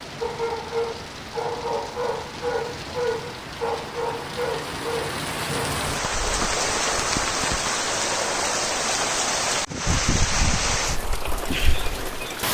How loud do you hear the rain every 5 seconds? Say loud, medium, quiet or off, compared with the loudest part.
medium, loud, loud.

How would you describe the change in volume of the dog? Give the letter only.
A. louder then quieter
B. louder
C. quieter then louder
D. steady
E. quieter
D.